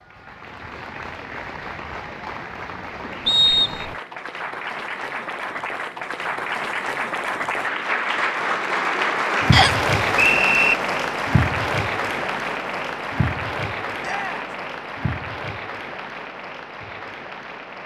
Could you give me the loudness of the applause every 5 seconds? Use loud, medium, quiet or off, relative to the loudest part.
medium, loud, loud, medium.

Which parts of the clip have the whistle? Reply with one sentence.
The whistle can be heard from 3.2 to 4.0 s and from 9.5 to 10.8 s.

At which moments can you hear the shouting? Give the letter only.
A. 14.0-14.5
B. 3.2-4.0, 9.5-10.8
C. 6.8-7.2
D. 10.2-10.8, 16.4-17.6
A.